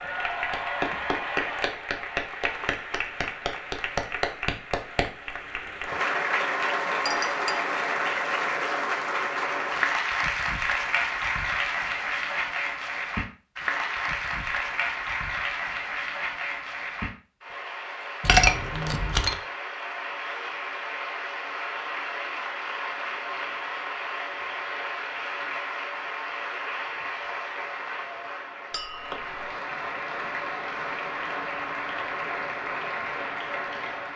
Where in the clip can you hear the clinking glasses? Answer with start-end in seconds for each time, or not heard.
7.0-7.6, 18.2-19.4, 28.7-29.2.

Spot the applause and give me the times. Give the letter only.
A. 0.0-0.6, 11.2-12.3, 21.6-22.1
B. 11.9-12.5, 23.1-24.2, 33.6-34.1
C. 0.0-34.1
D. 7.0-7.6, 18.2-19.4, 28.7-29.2
C.